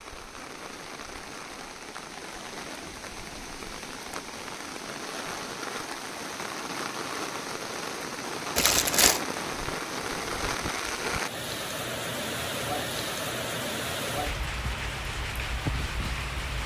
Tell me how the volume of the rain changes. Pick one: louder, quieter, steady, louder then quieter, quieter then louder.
louder.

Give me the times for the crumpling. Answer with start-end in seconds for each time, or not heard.
8.6-9.2.